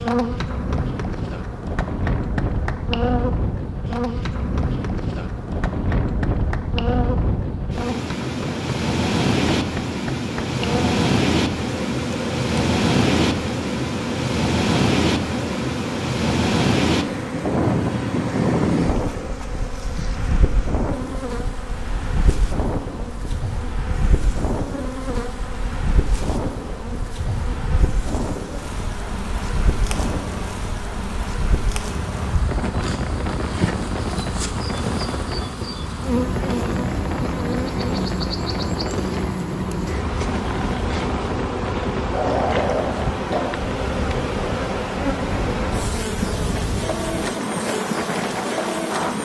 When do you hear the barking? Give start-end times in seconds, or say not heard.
42.1-43.4.